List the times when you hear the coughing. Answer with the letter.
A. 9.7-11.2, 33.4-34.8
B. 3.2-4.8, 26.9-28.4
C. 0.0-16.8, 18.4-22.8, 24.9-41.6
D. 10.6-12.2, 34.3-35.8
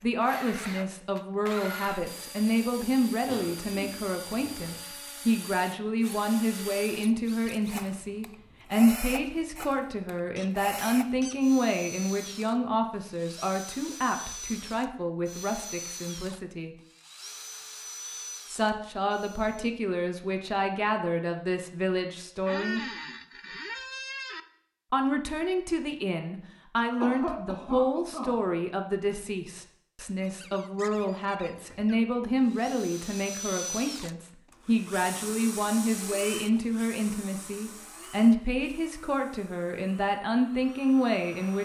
B.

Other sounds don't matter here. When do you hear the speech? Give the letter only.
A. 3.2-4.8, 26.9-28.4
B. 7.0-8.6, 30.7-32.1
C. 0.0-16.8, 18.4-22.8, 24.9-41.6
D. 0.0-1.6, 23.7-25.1
C.